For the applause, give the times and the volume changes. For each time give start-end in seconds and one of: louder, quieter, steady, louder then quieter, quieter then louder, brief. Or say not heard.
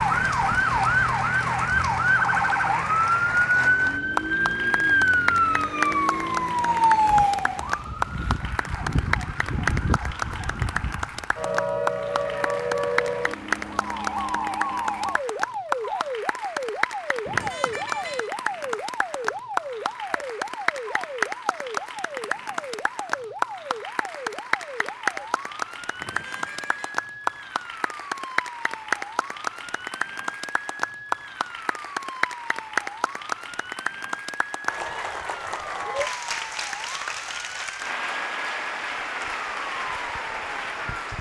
0.0-41.1 steady.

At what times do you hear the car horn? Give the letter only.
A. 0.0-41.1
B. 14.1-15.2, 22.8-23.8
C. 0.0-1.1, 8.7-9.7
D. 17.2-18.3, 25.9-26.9
D.